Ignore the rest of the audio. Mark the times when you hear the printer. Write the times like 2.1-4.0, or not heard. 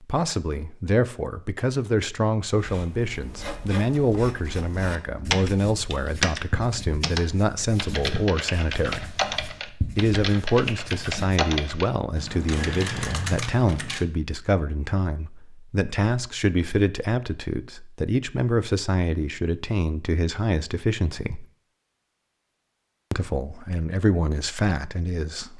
not heard.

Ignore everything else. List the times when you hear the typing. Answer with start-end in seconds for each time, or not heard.
5.3-14.1.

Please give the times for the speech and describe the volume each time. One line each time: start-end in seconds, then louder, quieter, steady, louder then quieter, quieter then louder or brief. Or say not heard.
0.0-9.2 steady
9.9-21.4 steady
23.1-25.5 brief.